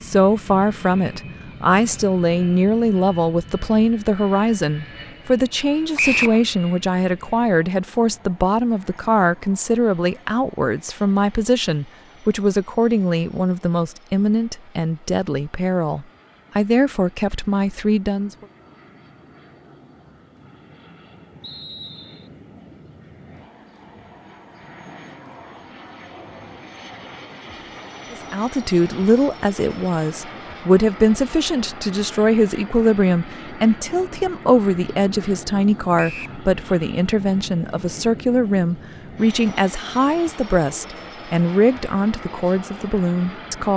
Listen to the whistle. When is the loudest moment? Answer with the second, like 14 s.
6 s.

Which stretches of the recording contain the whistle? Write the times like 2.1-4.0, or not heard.
6.0-6.4, 21.4-22.3, 36.0-36.4.